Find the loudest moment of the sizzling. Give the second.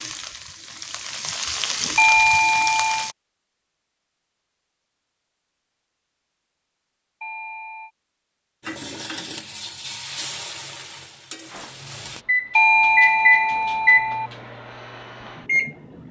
2 s.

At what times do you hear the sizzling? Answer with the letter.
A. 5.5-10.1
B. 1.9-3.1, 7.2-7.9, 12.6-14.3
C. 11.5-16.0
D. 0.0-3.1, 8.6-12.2
D.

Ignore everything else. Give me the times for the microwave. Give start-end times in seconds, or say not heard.
11.5-16.0.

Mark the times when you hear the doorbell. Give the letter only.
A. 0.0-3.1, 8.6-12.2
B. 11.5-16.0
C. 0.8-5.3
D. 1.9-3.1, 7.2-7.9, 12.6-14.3
D.